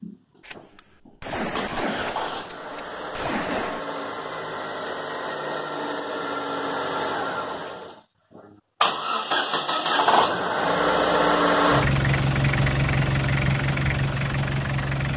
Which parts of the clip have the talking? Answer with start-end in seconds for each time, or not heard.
not heard.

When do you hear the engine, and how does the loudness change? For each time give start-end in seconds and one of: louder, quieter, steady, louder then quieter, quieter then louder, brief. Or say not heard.
0.0-15.1 louder.